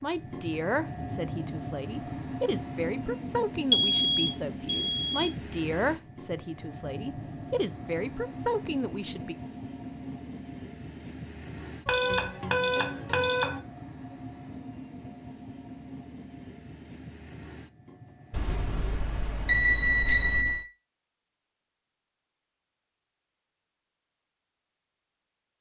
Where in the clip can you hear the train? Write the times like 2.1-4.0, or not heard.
0.0-20.6.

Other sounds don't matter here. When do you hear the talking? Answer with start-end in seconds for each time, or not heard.
0.0-9.3.